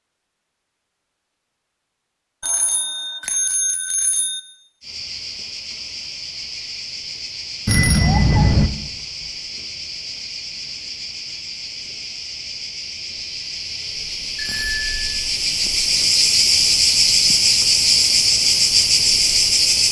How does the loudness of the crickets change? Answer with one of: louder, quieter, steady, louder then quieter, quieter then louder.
louder.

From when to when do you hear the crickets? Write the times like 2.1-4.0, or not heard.
4.8-19.8.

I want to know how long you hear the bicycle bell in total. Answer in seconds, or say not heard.
4 s.